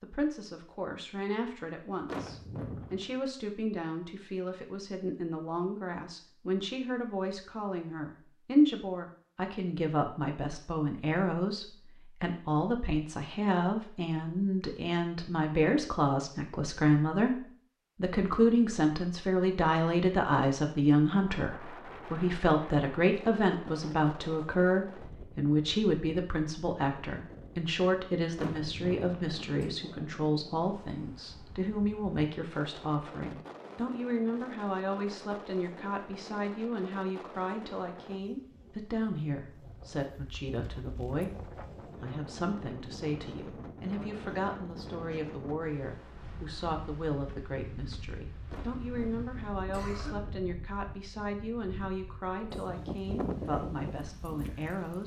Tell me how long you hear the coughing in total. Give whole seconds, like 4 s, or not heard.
4 s.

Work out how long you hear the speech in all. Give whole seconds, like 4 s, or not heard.
55 s.